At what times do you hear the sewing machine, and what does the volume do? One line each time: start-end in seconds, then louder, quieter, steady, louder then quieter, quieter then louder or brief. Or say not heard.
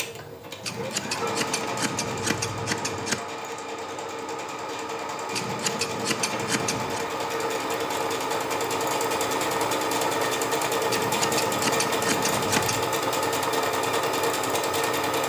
0.0-15.2 louder.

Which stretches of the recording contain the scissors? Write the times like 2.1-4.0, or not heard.
0.6-3.2, 5.3-7.0, 10.8-12.9.